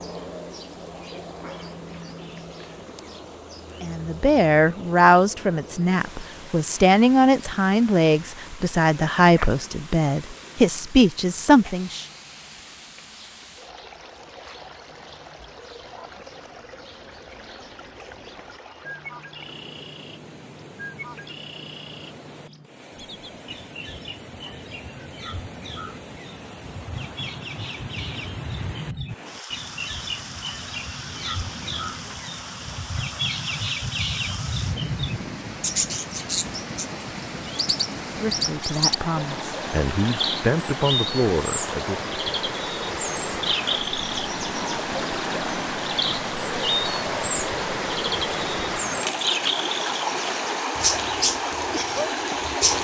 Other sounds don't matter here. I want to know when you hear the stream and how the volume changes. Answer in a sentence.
The stream can be heard from 0.0 to 52.7 s, getting louder.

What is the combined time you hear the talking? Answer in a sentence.
The talking can be heard for 12 seconds in total.